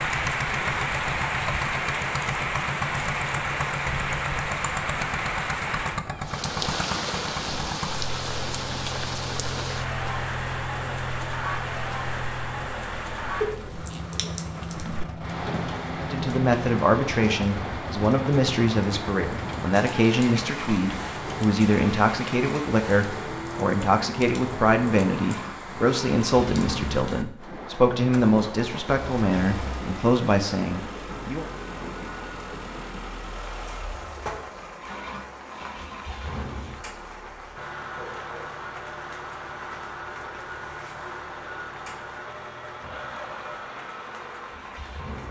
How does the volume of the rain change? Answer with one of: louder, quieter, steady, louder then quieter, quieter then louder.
quieter.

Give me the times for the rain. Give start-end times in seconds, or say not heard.
0.0-45.2.